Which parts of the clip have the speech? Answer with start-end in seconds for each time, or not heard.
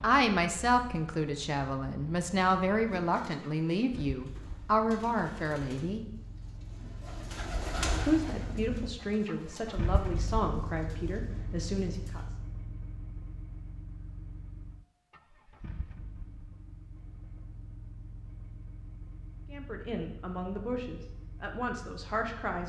0.0-6.0, 8.1-12.3, 19.5-22.6.